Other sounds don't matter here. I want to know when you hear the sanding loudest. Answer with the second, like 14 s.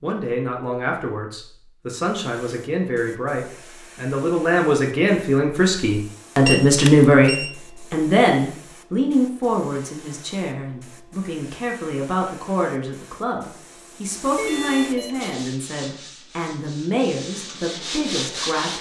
18 s.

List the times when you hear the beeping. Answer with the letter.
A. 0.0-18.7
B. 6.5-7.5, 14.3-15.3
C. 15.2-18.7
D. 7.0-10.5
B.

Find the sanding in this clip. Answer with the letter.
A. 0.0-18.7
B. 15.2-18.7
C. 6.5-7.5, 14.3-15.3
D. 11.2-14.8
B.